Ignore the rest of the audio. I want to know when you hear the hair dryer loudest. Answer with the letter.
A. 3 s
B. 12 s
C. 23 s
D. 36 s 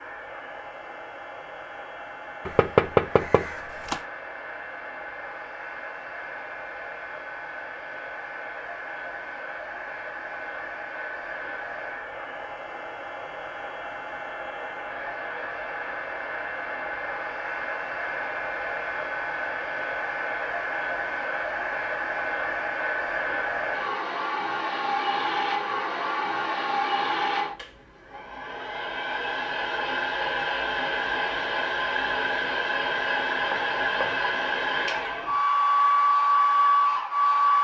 D.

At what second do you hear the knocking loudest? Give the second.
3 s.